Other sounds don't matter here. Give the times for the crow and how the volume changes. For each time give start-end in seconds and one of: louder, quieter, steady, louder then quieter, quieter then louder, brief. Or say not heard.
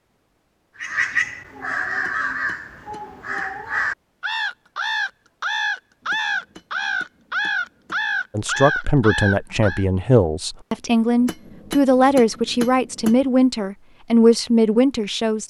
0.8-9.8 steady.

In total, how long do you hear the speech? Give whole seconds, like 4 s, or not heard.
7 s.